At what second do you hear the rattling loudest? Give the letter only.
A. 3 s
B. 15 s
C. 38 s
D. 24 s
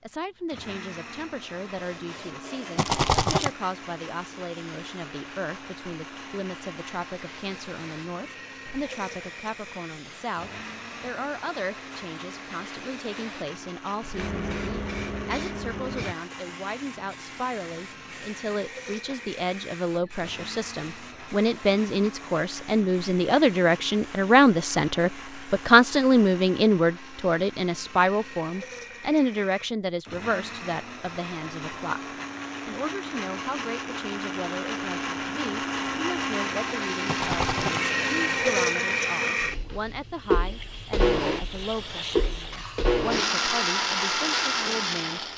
A.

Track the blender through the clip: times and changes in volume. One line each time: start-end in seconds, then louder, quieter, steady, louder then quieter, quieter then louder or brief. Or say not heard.
0.4-45.3 louder.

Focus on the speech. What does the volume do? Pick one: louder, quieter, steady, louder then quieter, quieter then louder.
louder then quieter.